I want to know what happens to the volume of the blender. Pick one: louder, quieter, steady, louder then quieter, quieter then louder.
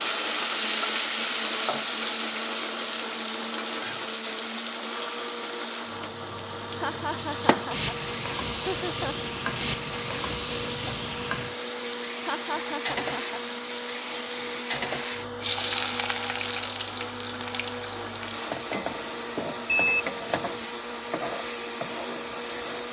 steady.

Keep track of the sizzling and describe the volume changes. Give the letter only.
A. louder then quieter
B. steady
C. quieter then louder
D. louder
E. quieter
B.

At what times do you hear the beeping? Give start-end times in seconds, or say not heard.
19.6-20.1.